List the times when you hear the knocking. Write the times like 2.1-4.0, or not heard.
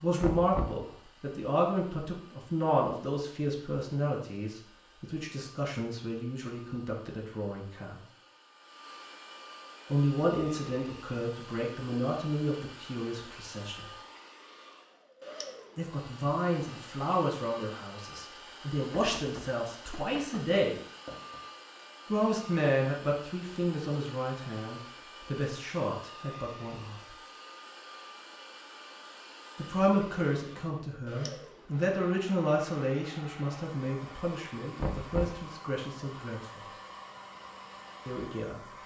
0.2-0.8, 19.1-21.4, 34.8-35.5.